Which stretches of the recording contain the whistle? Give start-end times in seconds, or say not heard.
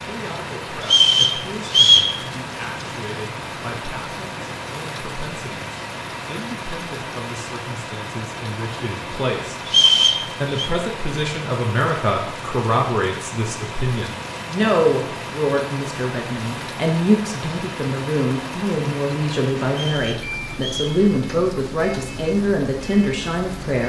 0.8-2.1, 9.7-10.7, 19.7-20.9.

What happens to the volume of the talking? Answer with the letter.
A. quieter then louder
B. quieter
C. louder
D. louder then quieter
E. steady
C.